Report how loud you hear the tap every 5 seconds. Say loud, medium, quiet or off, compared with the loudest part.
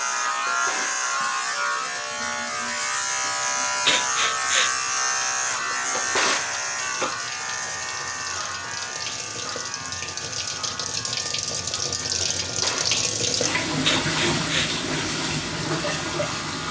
quiet, medium, loud, loud.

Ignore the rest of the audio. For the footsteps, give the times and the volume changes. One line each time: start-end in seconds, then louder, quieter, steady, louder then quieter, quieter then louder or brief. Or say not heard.
not heard.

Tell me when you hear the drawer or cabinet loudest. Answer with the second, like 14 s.
6 s.